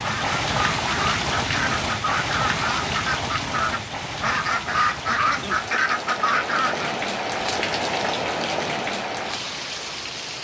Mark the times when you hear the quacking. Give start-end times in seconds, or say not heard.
0.0-7.0.